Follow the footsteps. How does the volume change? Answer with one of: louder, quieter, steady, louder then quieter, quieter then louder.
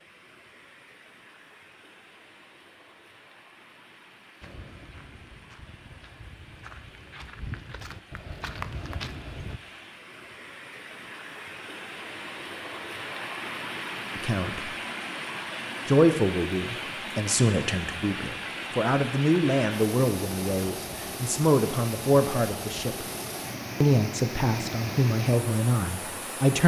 louder.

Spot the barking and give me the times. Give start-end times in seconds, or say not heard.
not heard.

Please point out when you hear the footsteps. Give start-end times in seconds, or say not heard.
4.4-9.6.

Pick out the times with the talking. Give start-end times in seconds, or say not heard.
14.2-14.7, 15.8-23.1, 23.8-26.6.